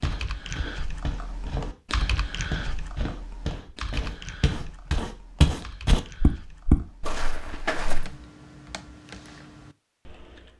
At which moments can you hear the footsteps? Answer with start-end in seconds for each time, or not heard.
0.0-8.1.